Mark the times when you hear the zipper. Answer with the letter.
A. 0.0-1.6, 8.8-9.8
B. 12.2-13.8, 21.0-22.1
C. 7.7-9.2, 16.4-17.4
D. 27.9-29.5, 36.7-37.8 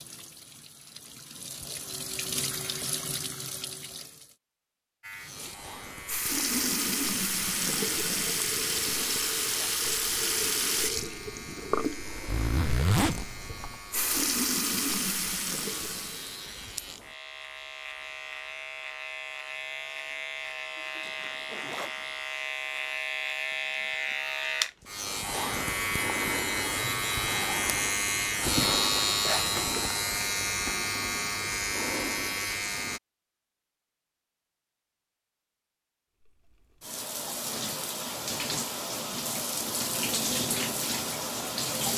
B.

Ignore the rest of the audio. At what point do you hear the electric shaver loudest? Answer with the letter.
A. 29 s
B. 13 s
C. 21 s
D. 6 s
A.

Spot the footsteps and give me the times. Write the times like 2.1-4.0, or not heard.
not heard.